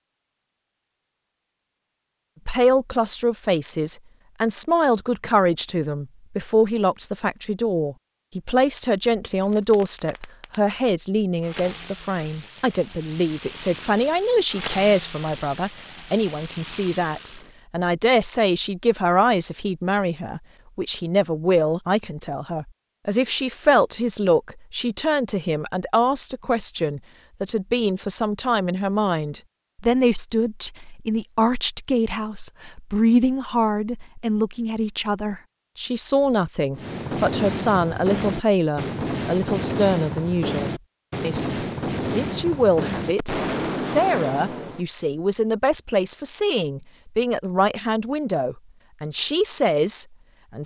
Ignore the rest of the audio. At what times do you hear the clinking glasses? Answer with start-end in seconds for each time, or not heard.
not heard.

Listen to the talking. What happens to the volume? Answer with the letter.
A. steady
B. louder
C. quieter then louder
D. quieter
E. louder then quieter
A.